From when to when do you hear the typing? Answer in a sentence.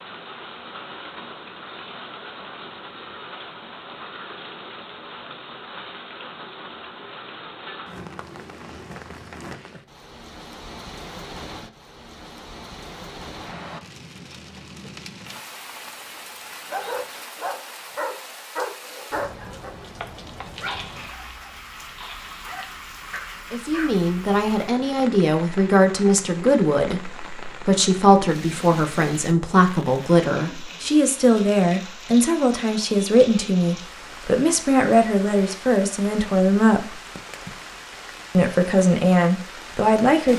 The typing can't be heard in this clip.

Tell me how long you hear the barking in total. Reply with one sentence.
You can hear the barking for 7 seconds altogether.